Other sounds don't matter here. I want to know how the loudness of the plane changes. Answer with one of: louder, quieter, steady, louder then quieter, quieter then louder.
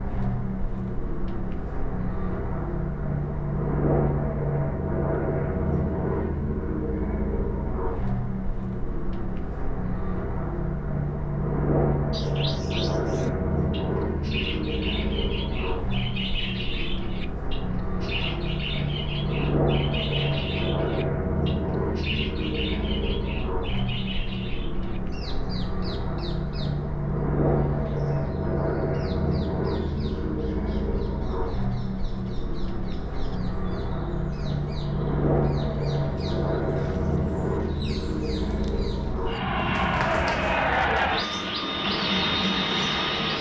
steady.